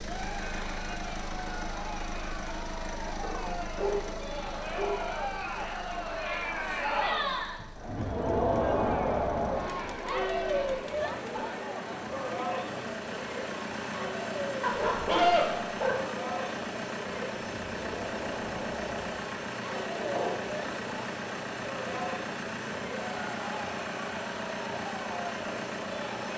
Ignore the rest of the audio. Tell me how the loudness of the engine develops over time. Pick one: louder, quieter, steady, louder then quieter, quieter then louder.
quieter then louder.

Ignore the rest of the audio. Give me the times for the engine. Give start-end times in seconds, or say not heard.
0.0-26.3.